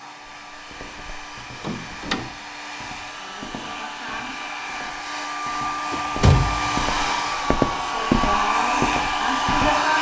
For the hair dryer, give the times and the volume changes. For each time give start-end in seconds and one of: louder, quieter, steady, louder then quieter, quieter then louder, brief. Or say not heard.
0.0-9.9 louder.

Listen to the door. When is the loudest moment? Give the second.
6 s.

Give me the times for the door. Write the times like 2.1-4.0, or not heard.
0.9-2.3, 5.9-6.8.